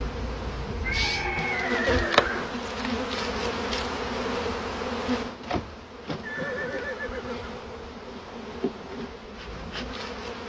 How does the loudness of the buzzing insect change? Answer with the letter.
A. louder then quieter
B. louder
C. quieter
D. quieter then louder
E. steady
C.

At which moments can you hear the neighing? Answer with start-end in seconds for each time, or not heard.
0.8-2.6, 6.2-7.8.